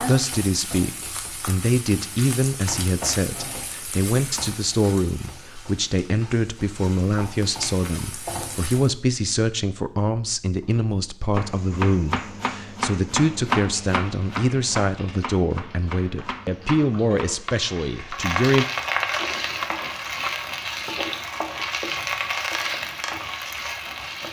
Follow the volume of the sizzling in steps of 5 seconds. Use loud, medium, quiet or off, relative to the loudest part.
medium, medium, quiet, loud, loud.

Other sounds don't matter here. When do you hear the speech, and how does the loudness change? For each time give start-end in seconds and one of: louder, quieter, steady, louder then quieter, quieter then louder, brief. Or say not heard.
0.0-18.6 steady.